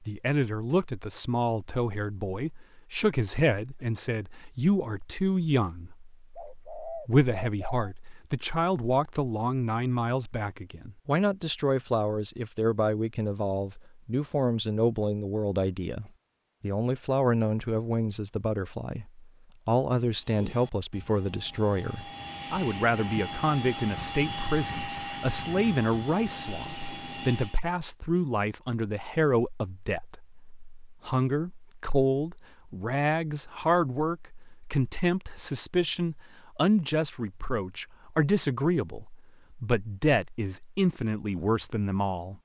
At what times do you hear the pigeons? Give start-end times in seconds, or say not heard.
6.3-7.9.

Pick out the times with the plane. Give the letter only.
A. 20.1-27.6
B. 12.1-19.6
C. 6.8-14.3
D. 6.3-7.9
A.